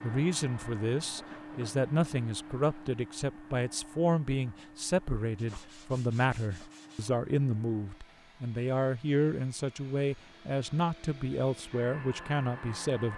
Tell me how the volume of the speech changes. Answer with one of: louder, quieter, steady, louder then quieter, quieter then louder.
steady.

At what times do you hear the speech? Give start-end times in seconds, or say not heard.
0.0-13.1.